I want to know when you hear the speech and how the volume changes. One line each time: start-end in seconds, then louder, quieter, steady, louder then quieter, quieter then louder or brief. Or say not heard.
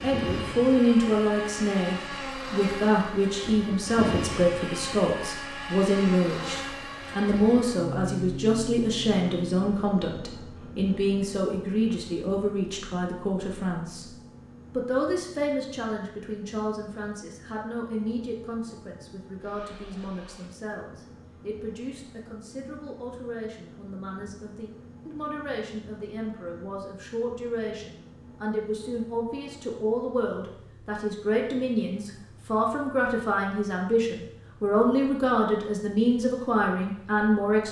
0.0-37.6 quieter then louder.